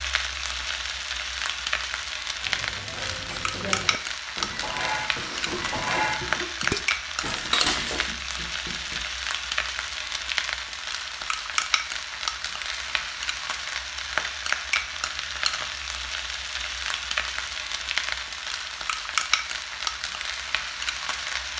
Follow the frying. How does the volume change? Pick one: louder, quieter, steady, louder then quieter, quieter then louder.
steady.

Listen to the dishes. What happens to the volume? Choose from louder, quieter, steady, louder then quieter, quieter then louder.
louder.